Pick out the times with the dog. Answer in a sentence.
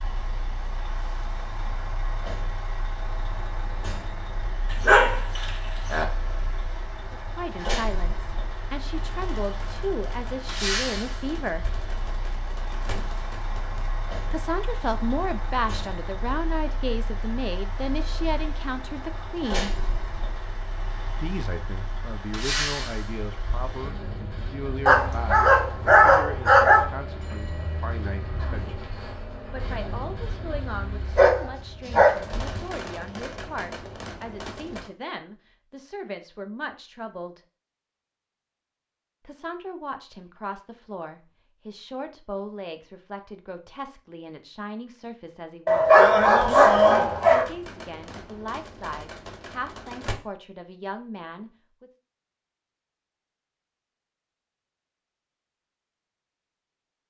The dog can be heard from 4.7 to 6.0 s, from 24.9 to 26.9 s, from 31.1 to 32.6 s and from 45.6 to 47.5 s.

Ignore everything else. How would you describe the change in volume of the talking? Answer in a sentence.
The loudness of the talking goes down.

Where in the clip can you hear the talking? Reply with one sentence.
You can hear the talking from 7.1 to 11.7 s, from 14.3 to 19.9 s, from 21.2 to 28.9 s, from 29.5 to 37.4 s and from 39.2 to 51.9 s.